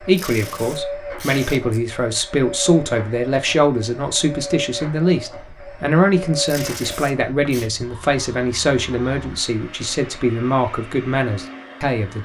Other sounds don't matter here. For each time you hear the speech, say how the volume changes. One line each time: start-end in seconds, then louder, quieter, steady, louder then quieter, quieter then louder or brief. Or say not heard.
0.0-12.2 steady.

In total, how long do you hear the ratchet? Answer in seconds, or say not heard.
not heard.